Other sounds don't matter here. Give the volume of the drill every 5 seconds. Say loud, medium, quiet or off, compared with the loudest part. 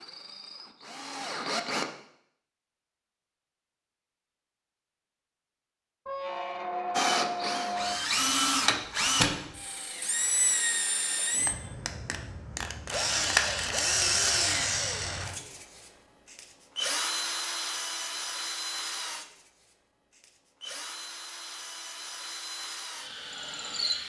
medium, loud, loud, medium, medium.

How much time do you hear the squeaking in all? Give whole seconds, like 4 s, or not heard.
2 s.